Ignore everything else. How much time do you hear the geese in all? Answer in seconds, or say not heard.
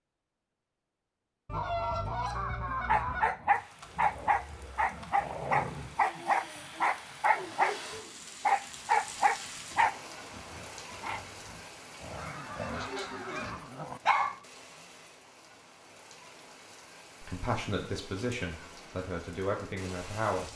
3 s.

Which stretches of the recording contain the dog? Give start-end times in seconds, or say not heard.
2.9-14.4.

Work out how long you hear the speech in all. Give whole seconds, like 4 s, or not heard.
3 s.